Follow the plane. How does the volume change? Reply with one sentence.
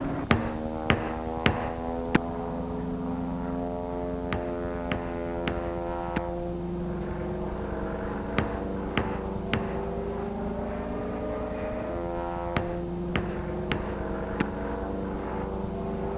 The volume of the plane stays about the same.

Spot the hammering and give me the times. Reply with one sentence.
The hammering can be heard from 0.3 to 2.2 s, from 4.3 to 6.2 s, from 8.3 to 9.8 s and from 12.6 to 14.4 s.